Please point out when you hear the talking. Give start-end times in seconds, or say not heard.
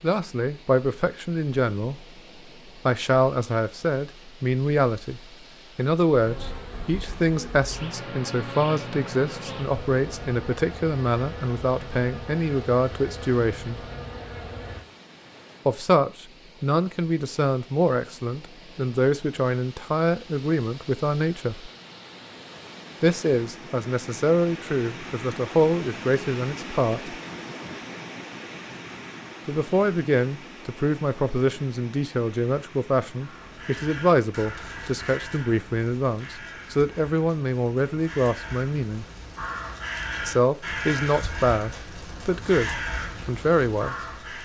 0.0-2.0, 2.9-13.8, 15.7-21.7, 23.0-27.1, 29.4-39.0, 40.2-44.0.